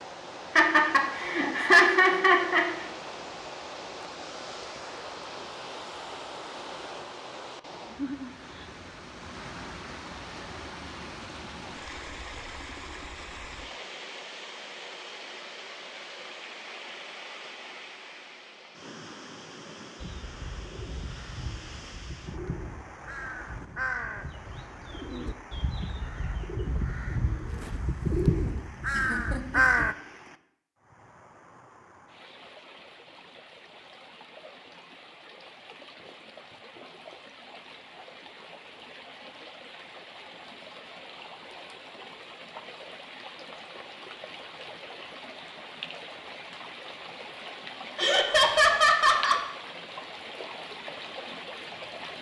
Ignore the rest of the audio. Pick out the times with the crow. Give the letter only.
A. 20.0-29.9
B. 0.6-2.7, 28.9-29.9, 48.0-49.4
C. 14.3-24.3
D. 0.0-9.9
A.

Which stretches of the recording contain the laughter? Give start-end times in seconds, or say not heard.
0.6-2.7, 28.9-29.9, 48.0-49.4.